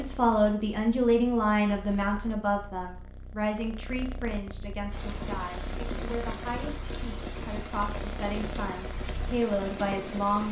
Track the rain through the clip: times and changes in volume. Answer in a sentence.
The rain can be heard from 4.9 to 10.4 s, at a steady volume.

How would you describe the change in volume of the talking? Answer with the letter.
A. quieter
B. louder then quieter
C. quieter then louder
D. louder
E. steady
C.